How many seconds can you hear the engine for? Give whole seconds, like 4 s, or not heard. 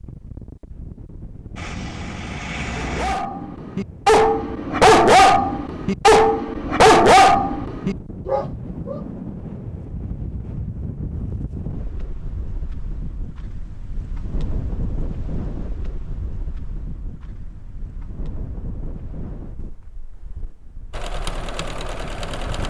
3 s.